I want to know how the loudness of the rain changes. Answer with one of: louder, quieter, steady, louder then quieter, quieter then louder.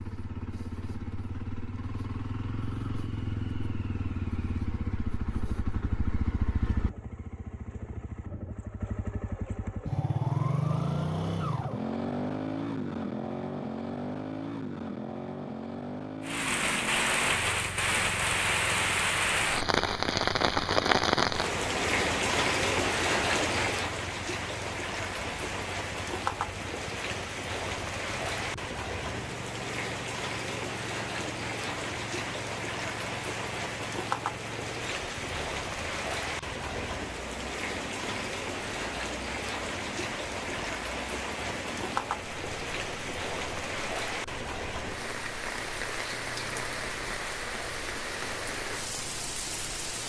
quieter.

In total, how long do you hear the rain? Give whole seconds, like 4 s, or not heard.
34 s.